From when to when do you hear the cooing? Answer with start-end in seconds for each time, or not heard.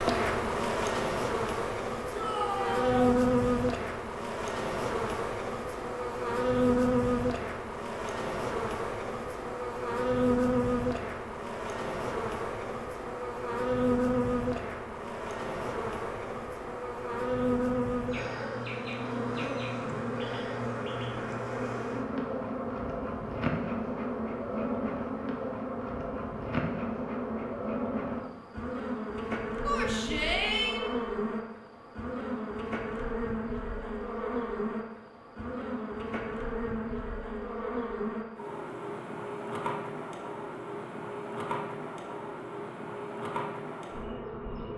not heard.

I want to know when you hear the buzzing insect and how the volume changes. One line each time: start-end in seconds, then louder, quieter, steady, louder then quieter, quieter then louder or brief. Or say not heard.
0.0-44.7 quieter.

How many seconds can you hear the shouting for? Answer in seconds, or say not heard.
2 s.